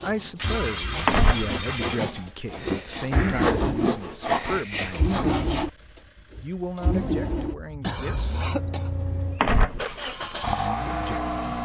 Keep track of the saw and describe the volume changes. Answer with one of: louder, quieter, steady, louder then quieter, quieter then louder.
louder.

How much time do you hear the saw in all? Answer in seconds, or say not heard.
6 s.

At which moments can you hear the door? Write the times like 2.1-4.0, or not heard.
1.1-1.5, 9.4-10.1.